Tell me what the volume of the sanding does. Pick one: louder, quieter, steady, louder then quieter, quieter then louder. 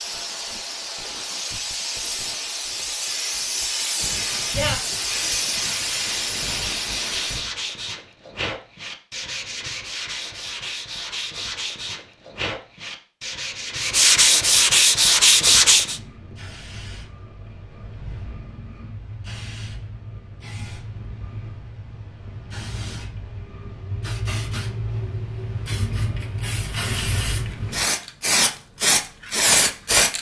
louder.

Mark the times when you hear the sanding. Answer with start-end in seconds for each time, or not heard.
3.9-16.0.